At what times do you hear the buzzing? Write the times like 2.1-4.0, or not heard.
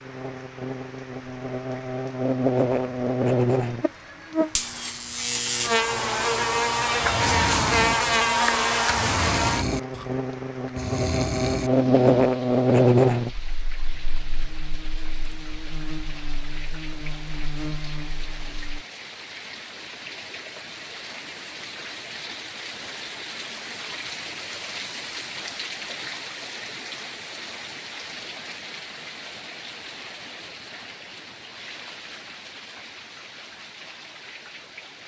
0.0-18.8.